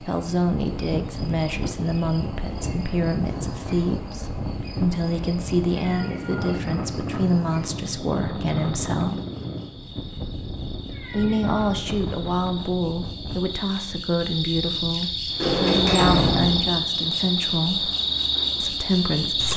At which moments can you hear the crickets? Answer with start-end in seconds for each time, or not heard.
0.0-19.5.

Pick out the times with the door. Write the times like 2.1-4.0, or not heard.
15.4-16.8.